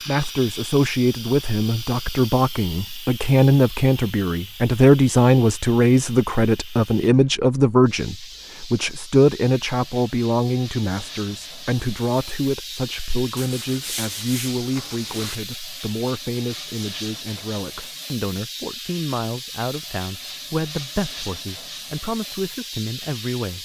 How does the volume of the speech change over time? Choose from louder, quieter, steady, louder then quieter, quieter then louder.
quieter.